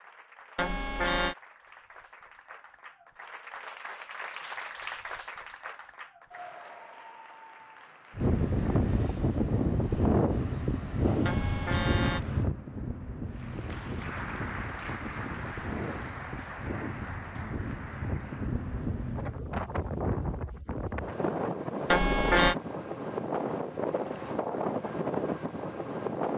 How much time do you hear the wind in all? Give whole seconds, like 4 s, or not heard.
18 s.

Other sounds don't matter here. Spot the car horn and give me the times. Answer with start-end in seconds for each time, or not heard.
0.6-1.4, 11.2-12.2, 21.9-22.6.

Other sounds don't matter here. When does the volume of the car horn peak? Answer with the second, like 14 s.
22 s.